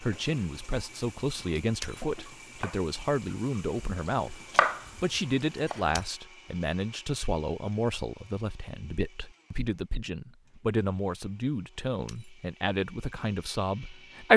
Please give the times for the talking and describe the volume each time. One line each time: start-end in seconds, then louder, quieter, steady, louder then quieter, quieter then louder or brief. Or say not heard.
0.0-14.3 steady.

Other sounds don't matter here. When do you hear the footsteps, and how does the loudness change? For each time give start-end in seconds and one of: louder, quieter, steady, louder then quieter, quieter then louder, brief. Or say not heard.
not heard.